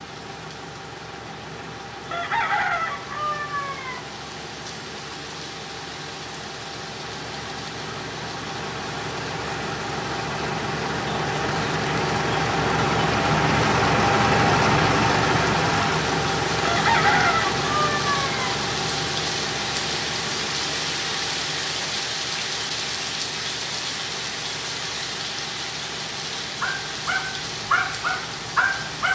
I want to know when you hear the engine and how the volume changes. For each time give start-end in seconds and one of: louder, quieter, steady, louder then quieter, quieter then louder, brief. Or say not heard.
0.0-29.0 louder then quieter.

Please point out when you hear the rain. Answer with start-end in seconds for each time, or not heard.
0.0-29.0.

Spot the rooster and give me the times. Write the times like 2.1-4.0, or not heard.
2.1-4.0, 16.6-18.6.